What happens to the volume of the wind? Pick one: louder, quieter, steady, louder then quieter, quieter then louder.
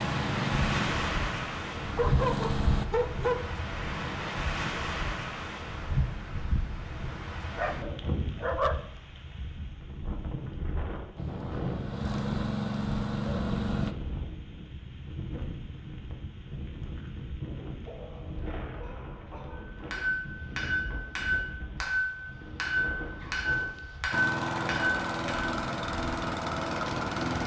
quieter.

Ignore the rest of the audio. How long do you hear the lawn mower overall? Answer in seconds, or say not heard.
9 s.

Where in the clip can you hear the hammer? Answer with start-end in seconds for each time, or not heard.
19.7-25.6.